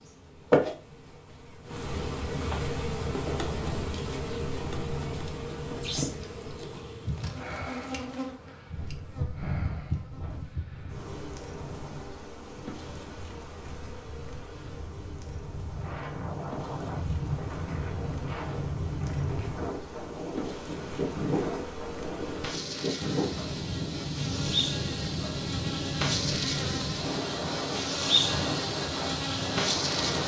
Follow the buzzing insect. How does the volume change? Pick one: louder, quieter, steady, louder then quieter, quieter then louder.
quieter then louder.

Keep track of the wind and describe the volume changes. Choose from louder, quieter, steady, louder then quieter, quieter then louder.
louder.